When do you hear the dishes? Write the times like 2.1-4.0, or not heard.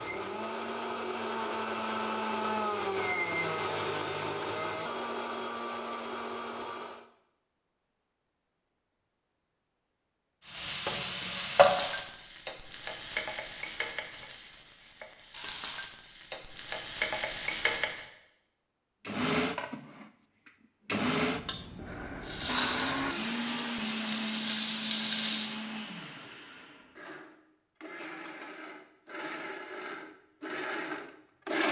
not heard.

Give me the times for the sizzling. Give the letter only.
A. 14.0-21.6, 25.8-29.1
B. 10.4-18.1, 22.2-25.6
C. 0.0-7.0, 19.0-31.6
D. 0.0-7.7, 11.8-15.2
B.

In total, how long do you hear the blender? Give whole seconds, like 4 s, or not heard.
20 s.